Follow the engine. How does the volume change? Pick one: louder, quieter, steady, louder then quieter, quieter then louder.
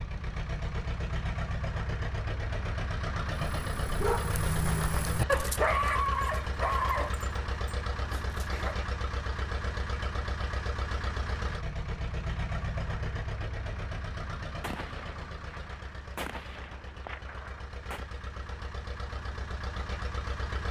quieter.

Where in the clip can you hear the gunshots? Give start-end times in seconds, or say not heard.
14.6-18.1.